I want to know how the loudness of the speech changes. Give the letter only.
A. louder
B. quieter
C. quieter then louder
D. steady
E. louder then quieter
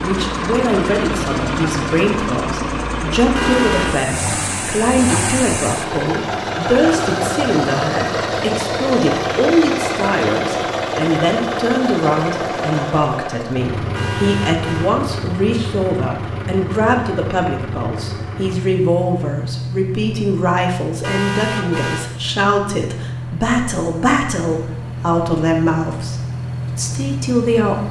D.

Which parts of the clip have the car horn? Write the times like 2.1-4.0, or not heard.
3.4-4.0, 13.9-14.9, 21.0-22.0.